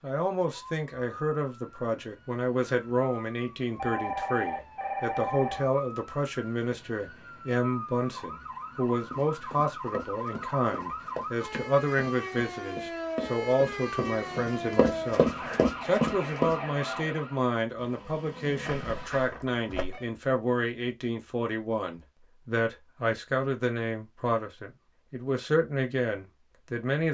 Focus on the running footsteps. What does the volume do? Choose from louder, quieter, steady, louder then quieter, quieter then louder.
louder.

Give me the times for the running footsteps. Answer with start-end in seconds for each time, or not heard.
9.1-16.6.